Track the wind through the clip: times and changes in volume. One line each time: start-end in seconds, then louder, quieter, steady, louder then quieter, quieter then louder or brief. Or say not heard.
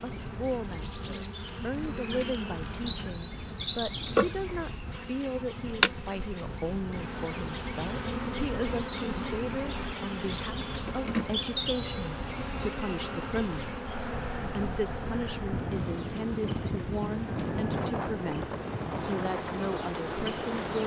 0.0-20.8 louder.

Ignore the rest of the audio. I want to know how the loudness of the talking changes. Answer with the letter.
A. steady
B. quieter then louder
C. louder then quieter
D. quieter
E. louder
A.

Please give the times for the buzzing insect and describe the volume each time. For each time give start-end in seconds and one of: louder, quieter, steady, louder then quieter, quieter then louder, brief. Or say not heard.
0.0-20.8 quieter.